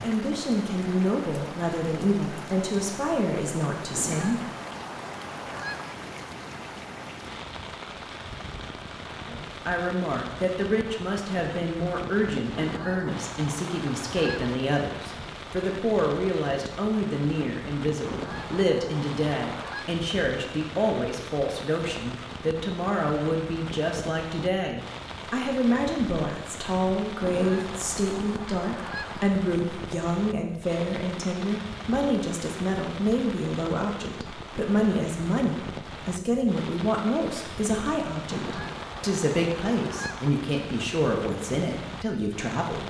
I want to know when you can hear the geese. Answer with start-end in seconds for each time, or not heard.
3.9-6.0, 12.6-14.6, 18.0-19.9, 27.2-29.2, 38.3-40.3.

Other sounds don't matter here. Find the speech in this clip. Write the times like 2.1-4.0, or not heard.
0.0-4.4, 9.2-42.8.